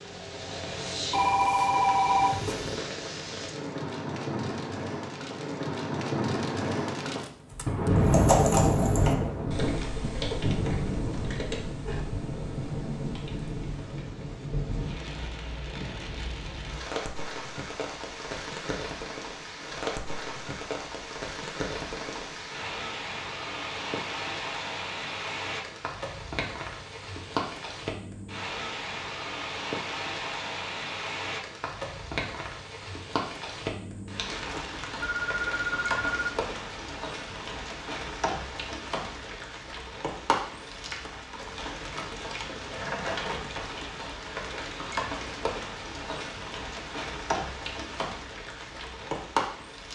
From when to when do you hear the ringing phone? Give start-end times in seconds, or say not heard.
1.1-2.8, 35.0-36.3.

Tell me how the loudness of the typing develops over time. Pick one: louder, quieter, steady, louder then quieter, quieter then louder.
quieter.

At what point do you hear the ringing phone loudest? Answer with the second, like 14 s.
2 s.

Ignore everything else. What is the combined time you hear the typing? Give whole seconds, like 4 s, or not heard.
6 s.